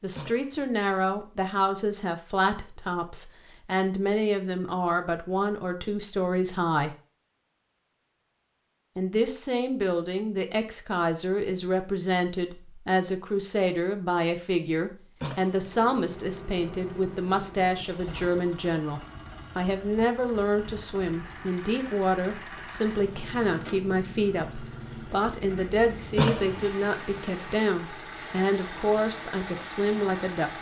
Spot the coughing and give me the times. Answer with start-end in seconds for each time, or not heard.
0.1-0.7, 15.2-15.7, 26.1-26.8.